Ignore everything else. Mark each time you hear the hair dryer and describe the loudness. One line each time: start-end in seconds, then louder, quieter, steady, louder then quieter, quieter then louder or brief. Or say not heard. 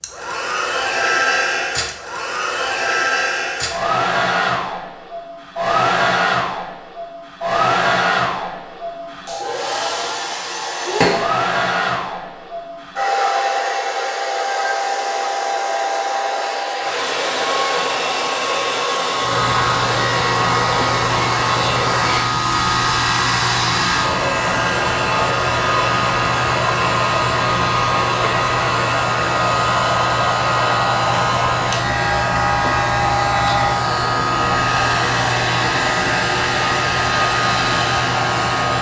0.0-38.7 steady.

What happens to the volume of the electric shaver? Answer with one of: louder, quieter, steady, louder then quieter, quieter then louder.
steady.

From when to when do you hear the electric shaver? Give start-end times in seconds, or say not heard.
19.1-38.7.